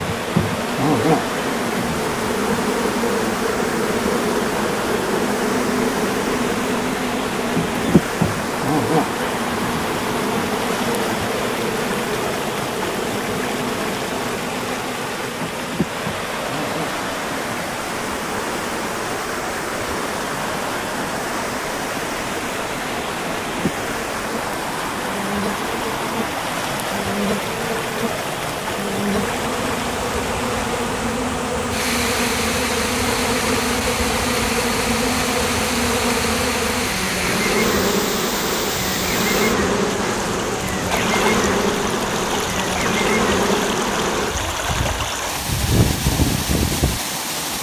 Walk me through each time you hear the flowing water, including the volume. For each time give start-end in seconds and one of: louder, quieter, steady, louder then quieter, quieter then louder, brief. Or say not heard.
0.0-47.5 steady.